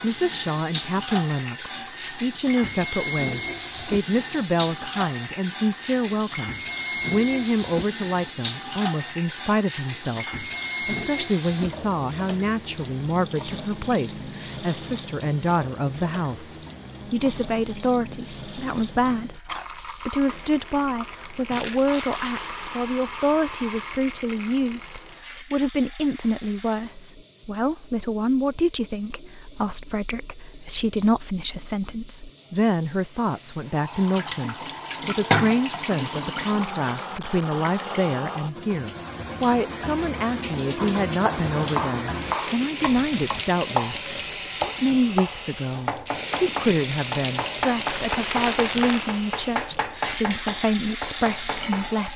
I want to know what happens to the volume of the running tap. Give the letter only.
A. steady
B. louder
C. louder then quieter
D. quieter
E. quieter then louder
E.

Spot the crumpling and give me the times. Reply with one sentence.
You can hear the crumpling from 21.5 to 22.9 s and from 48.0 to 49.1 s.